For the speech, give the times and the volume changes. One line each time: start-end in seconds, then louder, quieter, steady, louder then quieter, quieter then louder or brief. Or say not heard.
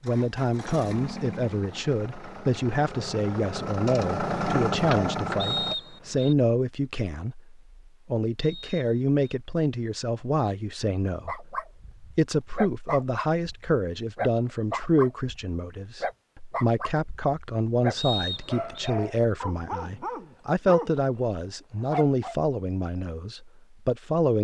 0.0-24.4 steady.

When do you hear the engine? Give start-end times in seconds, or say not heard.
0.0-5.8.